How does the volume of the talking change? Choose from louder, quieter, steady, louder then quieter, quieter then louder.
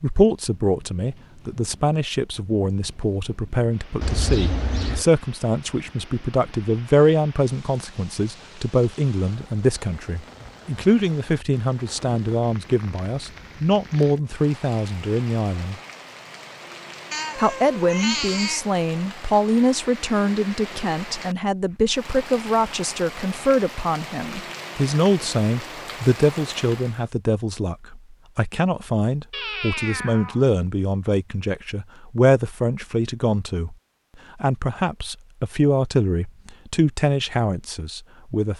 steady.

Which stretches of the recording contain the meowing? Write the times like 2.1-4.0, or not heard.
4.0-5.0, 17.1-18.6, 29.3-30.4.